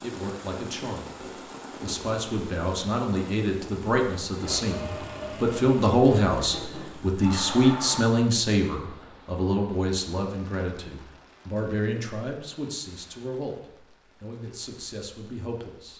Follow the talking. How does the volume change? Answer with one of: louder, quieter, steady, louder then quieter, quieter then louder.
louder then quieter.